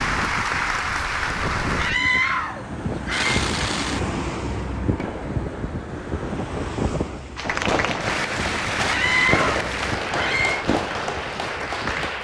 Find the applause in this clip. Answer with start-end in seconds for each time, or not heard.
0.0-1.9, 7.3-12.2.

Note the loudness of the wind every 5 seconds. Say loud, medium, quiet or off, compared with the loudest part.
loud, loud, medium.